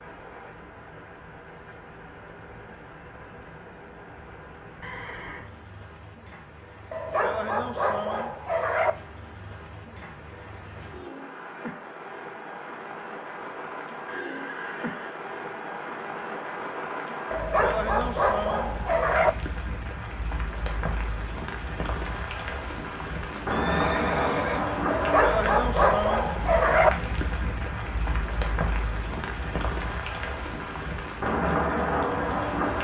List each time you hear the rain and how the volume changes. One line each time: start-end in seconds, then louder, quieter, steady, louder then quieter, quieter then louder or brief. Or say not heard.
0.0-32.7 louder.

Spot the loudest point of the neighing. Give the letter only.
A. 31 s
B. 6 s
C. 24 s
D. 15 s
C.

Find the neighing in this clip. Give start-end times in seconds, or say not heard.
4.8-5.5, 14.1-15.2, 23.4-24.6.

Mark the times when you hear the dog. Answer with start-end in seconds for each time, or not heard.
6.9-8.9, 17.3-19.3, 24.9-26.9.